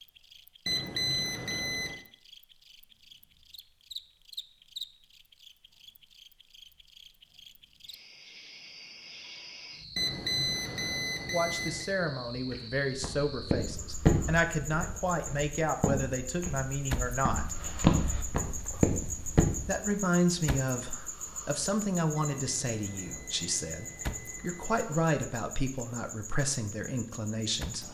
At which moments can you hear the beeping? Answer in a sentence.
You can hear the beeping from 0.7 to 2.0 s, from 9.9 to 11.9 s and from 22.1 to 24.8 s.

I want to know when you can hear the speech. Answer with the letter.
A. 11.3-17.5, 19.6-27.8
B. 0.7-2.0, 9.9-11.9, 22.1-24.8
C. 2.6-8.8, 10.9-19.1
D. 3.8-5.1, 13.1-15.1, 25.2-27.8
A.